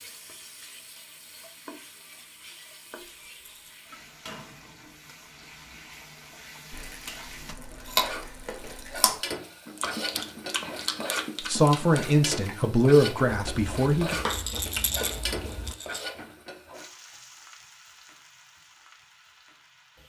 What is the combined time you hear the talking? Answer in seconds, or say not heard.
3 s.